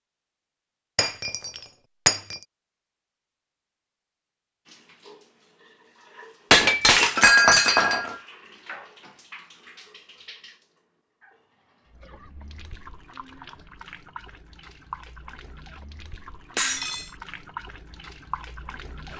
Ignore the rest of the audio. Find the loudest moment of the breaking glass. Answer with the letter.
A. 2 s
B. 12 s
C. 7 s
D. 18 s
C.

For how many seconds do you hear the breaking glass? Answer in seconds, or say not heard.
4 s.